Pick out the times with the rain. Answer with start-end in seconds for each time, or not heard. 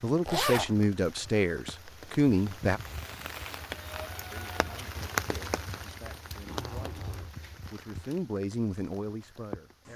0.0-9.9.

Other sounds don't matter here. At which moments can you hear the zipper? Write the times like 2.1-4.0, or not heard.
0.2-0.8, 6.4-7.3.